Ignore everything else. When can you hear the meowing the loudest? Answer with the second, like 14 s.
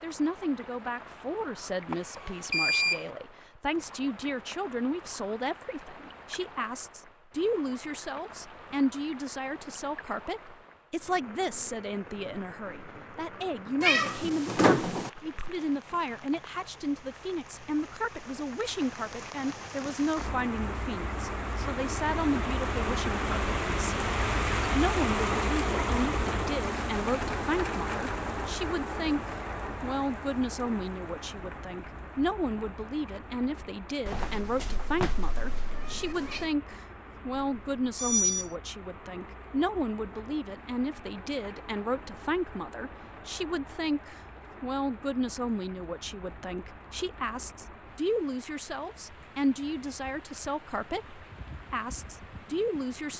15 s.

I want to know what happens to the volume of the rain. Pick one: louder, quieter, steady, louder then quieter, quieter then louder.
louder then quieter.